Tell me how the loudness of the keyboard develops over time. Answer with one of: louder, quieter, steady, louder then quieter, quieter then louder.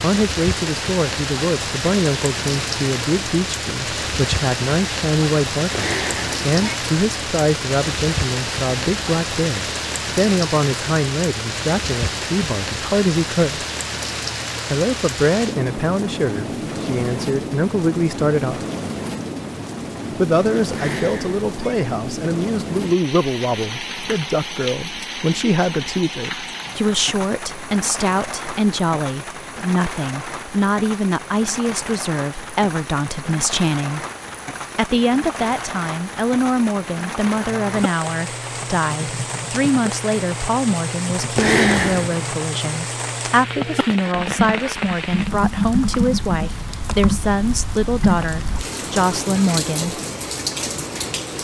louder.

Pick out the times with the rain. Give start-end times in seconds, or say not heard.
0.0-51.3.